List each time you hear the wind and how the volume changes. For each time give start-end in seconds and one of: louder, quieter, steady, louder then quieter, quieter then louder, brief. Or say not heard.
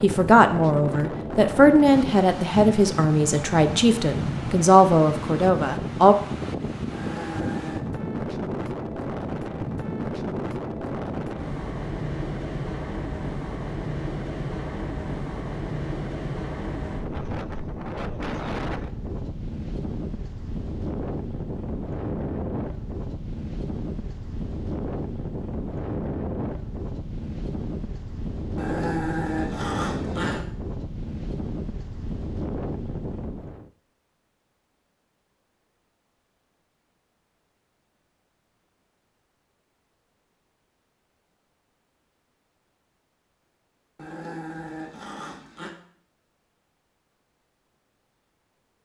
0.0-33.7 steady.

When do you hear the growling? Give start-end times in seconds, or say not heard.
6.9-7.9, 28.6-30.4, 44.0-45.7.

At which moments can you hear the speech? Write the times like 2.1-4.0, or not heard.
0.0-6.2.